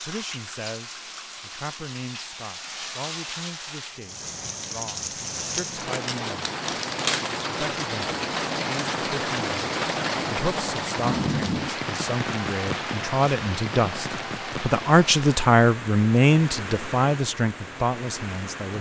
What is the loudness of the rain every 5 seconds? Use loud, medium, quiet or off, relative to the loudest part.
medium, loud, loud, medium.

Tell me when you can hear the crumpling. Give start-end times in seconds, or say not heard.
5.8-7.4.